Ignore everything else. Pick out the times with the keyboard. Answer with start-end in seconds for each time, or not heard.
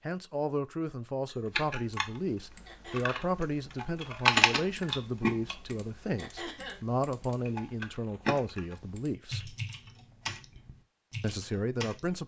1.6-12.2.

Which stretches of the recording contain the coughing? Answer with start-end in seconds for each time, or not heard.
2.6-3.2, 6.2-6.8.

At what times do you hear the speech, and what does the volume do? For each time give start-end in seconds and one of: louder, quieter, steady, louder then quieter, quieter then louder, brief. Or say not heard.
0.1-9.6 steady
11.2-12.2 brief.